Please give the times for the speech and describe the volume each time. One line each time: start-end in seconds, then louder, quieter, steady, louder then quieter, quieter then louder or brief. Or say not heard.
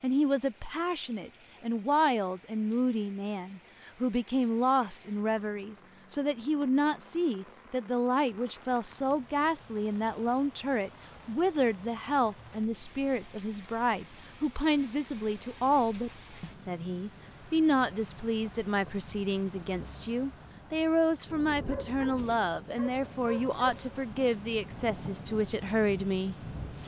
0.0-26.8 steady.